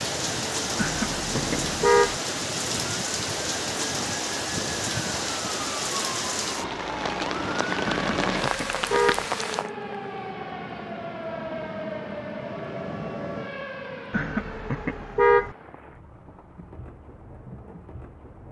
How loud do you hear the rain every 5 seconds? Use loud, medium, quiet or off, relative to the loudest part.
loud, loud, quiet, quiet.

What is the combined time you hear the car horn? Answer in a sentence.
The car horn can be heard for 4 seconds in total.